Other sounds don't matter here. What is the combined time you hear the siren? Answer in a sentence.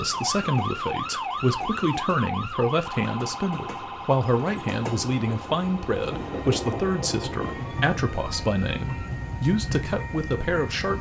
You can hear the siren for 9 seconds altogether.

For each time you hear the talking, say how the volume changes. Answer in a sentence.
You can hear the talking from 0.0 to 10.9 s, at a steady volume.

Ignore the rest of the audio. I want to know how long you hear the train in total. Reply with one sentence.
The train can be heard for 11 seconds in total.